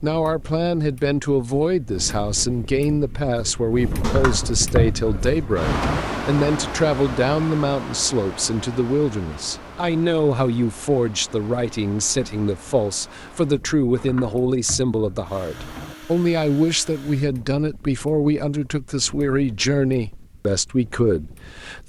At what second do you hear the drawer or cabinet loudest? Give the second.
5 s.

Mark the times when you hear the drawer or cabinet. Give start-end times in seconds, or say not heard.
4.0-6.0, 13.9-15.9.